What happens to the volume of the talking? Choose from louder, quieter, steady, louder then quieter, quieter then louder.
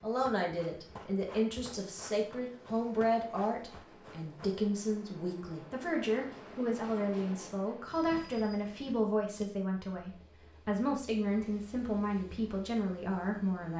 steady.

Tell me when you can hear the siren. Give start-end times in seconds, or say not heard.
not heard.